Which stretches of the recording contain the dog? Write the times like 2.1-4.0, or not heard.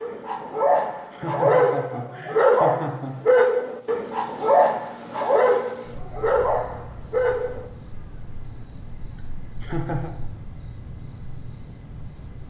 0.0-7.7.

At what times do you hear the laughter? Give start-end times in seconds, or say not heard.
1.1-3.2, 9.6-10.1.